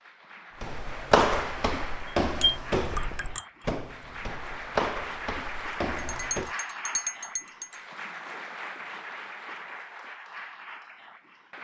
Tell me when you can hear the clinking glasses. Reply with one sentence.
You can hear the clinking glasses from 2.4 to 3.5 s and from 6.0 to 7.8 s.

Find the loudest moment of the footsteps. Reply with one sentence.
The loudest moment of the footsteps is at 1 second.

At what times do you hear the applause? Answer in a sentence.
You can hear the applause from 0.0 to 11.5 s.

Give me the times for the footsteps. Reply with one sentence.
The footsteps can be heard from 0.6 to 6.5 s.